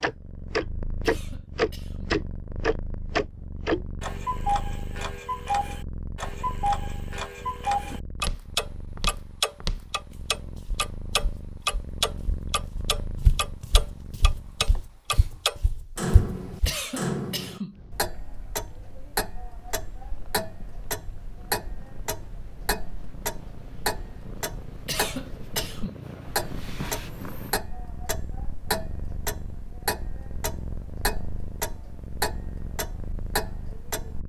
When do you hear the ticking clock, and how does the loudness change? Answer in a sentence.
The ticking clock can be heard from 0.0 to 34.2 s, getting quieter.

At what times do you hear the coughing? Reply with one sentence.
You can hear the coughing from 1.0 to 2.1 s, from 16.6 to 17.8 s and from 24.9 to 26.0 s.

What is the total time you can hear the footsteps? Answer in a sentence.
The footsteps can be heard for 9 seconds in total.